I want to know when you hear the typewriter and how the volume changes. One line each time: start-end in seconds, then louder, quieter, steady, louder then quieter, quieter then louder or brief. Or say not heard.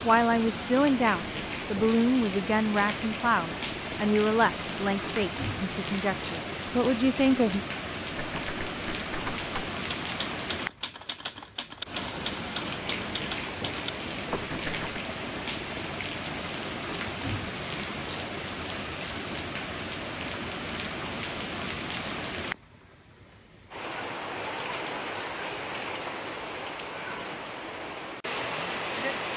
8.2-15.0 steady.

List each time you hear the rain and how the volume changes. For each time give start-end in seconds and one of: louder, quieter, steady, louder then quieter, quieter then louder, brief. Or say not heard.
0.0-29.3 steady.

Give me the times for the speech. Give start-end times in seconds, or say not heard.
0.0-7.6.